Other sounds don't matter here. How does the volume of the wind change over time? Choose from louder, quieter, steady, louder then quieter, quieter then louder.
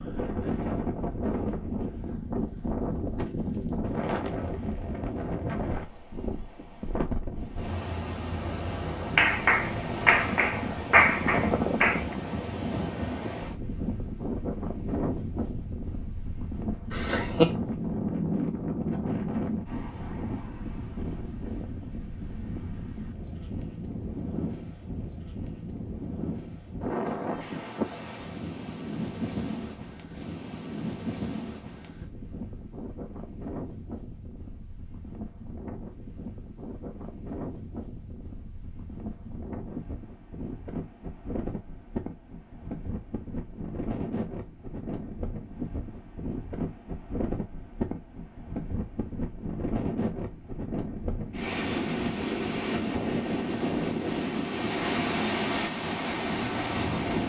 quieter then louder.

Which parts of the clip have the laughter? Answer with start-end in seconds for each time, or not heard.
16.9-17.5.